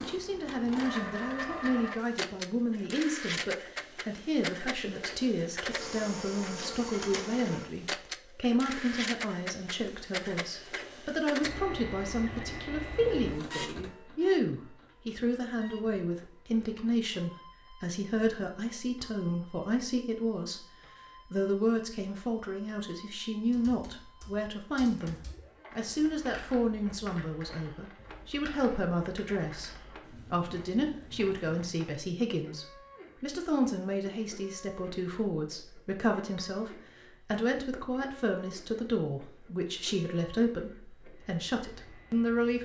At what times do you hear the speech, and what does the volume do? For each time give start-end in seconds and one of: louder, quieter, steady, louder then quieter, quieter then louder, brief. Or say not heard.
0.0-20.6 steady
21.3-42.5 steady.